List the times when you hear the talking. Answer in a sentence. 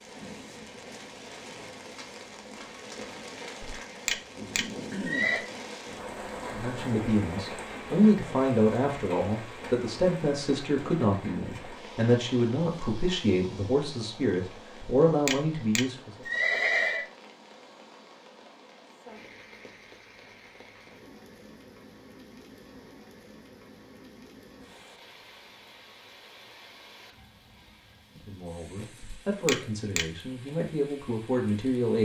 The talking can be heard from 6.4 to 16.1 s and from 28.1 to 31.9 s.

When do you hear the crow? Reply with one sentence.
You can't hear the crow here.